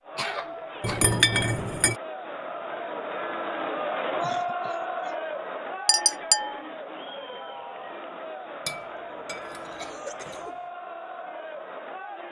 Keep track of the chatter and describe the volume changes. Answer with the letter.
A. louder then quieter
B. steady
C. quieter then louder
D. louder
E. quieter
A.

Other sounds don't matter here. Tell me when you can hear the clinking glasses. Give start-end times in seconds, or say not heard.
0.8-1.9, 5.8-6.6, 8.7-10.4.